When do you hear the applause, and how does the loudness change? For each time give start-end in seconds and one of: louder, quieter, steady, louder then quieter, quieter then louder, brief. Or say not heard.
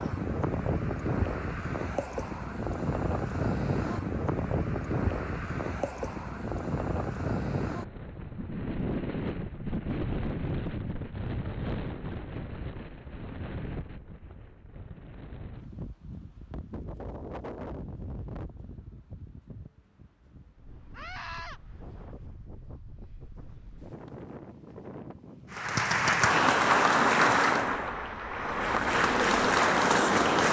25.5-30.4 quieter then louder.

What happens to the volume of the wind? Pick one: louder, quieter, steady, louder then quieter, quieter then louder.
quieter.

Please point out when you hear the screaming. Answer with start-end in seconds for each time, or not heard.
20.9-21.6.